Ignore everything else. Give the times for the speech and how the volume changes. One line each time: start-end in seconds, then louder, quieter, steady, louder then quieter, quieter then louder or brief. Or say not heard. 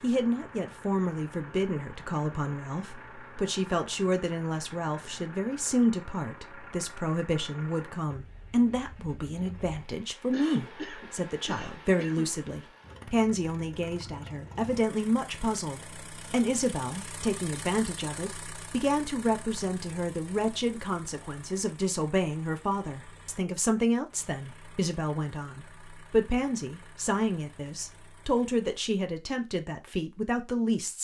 0.0-30.9 steady.